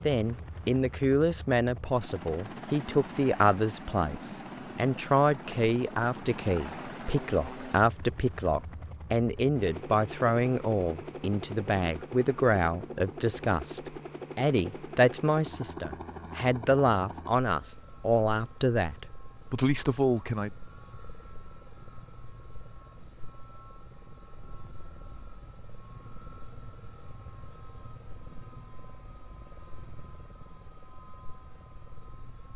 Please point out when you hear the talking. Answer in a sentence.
The talking can be heard from 0.1 to 20.5 s.